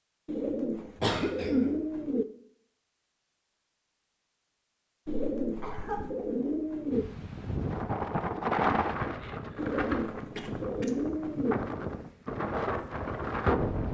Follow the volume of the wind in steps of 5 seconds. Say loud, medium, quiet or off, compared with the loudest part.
off, loud, loud.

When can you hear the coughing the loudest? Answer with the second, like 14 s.
1 s.